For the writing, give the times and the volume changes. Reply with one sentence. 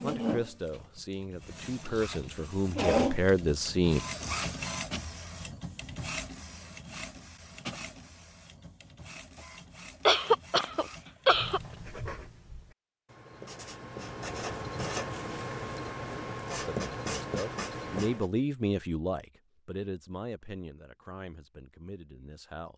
You can hear the writing from 11.2 to 18.3 s, getting louder.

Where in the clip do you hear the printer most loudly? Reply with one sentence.
The volume of the printer peaks at 3 seconds.